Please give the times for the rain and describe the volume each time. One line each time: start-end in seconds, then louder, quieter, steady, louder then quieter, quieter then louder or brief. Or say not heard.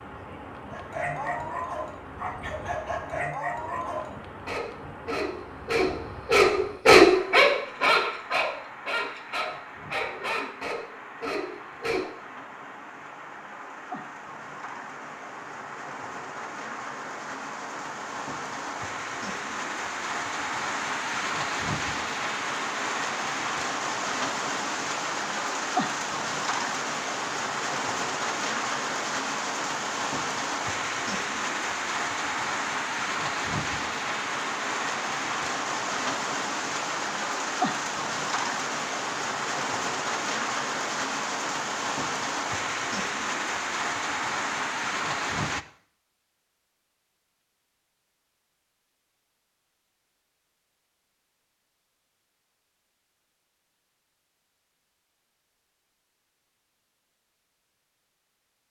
0.0-45.6 louder.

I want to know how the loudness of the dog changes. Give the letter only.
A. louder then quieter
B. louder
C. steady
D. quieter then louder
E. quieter
A.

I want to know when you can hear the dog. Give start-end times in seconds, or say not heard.
0.7-12.2.